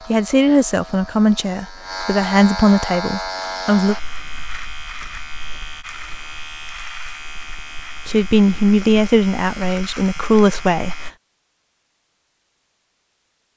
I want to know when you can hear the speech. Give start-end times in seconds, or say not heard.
0.1-4.0, 8.1-11.0.